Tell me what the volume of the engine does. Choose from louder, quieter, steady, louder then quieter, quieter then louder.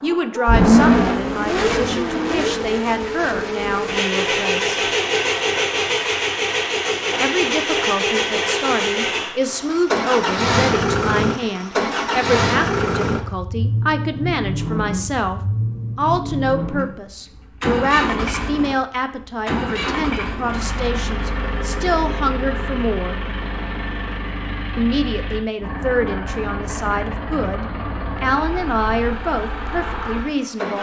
quieter.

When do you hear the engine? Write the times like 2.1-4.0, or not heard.
0.0-30.7.